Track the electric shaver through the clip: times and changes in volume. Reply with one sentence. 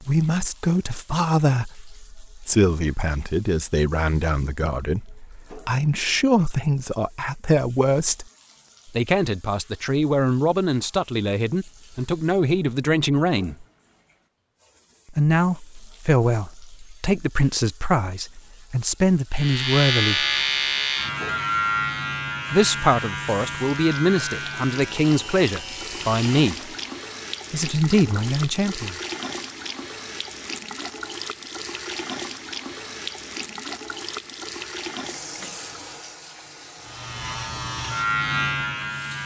The electric shaver can be heard from 19.4 to 26.9 s, getting quieter; and briefly from 36.8 to 39.2 s.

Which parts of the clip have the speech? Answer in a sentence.
The speech can be heard from 0.0 to 8.2 s, from 8.9 to 13.7 s, from 15.1 to 20.2 s, from 22.5 to 26.7 s and from 27.5 to 28.9 s.